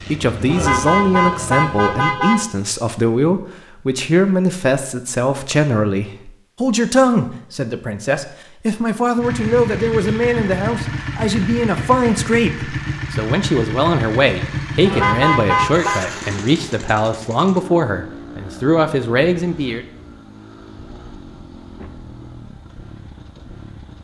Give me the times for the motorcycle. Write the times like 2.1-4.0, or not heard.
0.0-1.9, 9.2-23.9.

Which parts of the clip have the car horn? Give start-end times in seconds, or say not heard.
0.5-2.5, 14.8-16.0.